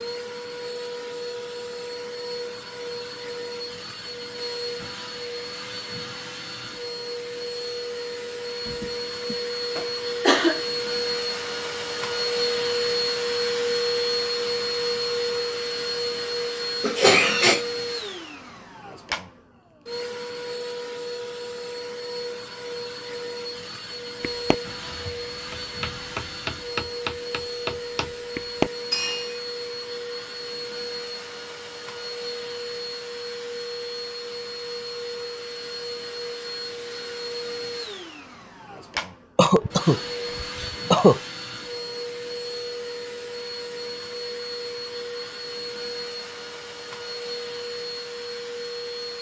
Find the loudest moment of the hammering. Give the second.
29 s.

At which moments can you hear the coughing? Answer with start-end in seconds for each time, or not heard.
8.7-10.6, 16.8-17.6, 39.4-41.2.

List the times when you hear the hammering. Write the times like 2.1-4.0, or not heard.
24.2-29.4.